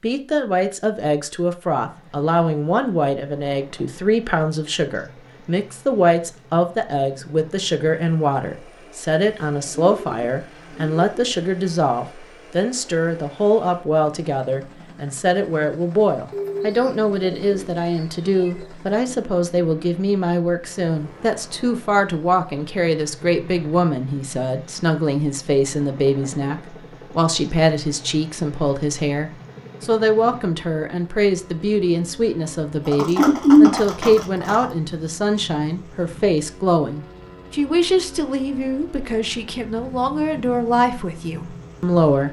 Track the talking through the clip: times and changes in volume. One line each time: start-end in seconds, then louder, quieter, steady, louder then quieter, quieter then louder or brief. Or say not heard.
0.0-42.2 steady.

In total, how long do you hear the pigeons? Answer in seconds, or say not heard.
6 s.